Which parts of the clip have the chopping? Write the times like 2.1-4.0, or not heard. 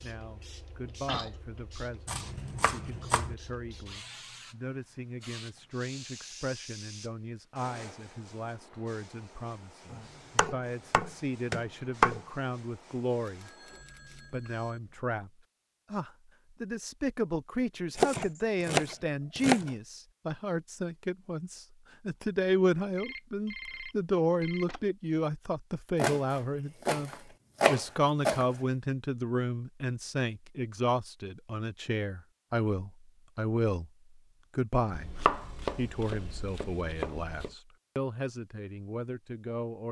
2.0-3.4, 9.9-12.2, 17.9-19.7, 25.9-28.5, 34.9-37.5.